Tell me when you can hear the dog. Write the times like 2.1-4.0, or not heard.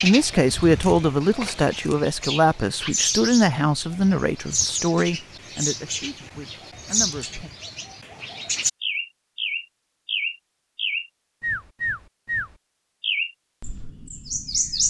not heard.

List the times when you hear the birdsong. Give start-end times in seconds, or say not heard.
0.0-14.8.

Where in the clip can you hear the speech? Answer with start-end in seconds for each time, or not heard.
0.0-7.5.